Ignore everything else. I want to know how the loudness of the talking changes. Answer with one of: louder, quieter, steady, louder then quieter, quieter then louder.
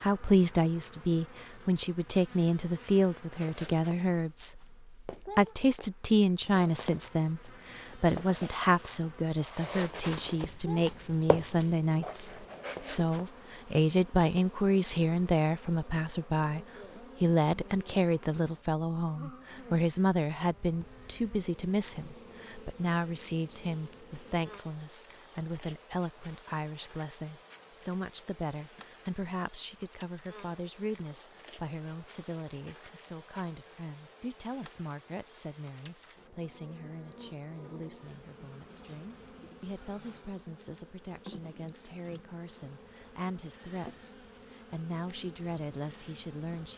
quieter.